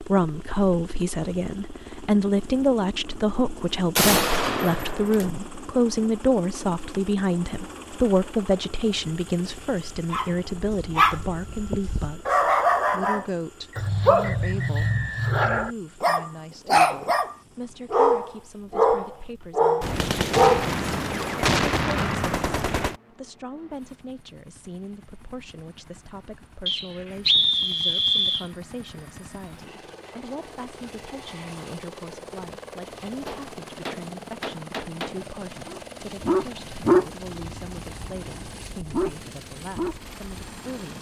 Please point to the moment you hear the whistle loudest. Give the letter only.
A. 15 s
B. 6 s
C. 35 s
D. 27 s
D.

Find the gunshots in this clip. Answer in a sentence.
You can hear the gunshots from 4.0 to 5.3 s, from 19.8 to 22.9 s and from 33.2 to 35.1 s.